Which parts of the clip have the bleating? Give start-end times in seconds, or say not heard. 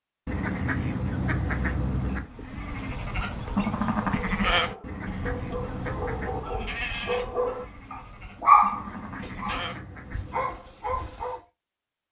2.3-11.4.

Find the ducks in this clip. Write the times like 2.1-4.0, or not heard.
0.2-2.3, 4.8-6.5, 8.7-10.7.